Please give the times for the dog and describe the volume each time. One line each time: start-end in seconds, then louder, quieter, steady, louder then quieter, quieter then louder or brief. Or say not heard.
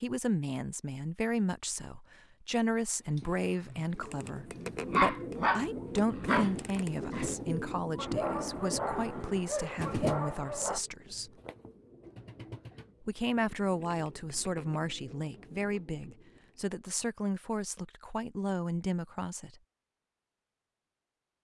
3.1-10.8 louder then quieter.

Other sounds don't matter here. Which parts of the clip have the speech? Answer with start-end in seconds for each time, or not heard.
0.0-11.3, 13.0-19.6.